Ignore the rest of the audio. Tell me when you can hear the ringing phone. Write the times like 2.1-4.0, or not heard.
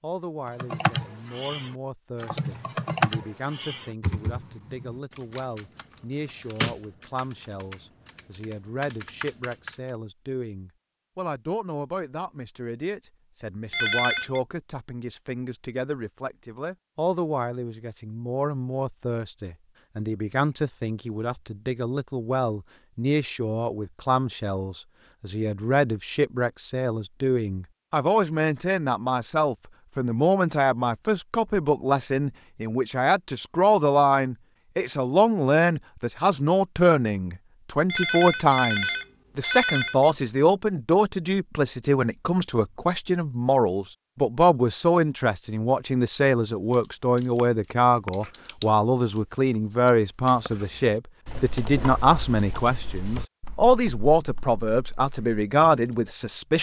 13.7-14.4, 37.9-40.1.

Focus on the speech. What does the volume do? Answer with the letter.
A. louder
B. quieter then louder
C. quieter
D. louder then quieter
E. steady
A.